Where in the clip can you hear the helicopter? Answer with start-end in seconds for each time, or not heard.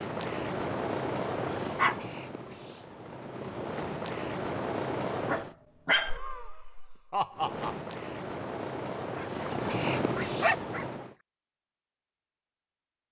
0.0-5.5, 7.3-11.2.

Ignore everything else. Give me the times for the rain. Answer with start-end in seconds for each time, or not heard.
not heard.